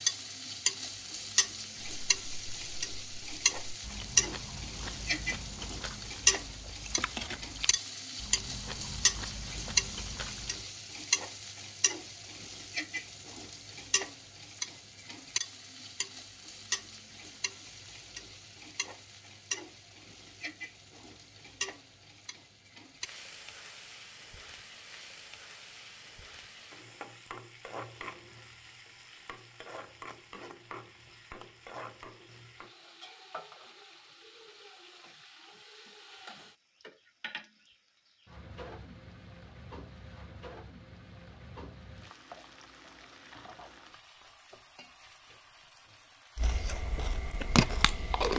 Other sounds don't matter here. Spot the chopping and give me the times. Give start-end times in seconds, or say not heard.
not heard.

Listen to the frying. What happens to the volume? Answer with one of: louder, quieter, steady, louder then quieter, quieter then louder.
quieter.